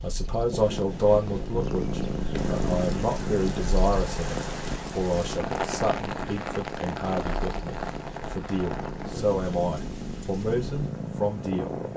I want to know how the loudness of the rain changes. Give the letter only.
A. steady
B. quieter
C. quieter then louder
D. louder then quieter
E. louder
D.